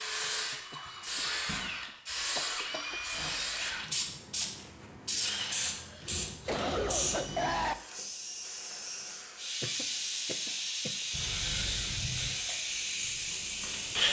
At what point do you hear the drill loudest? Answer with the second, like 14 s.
14 s.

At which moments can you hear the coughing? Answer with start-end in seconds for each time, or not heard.
0.5-1.6, 2.4-3.0, 5.8-7.8, 9.6-10.9.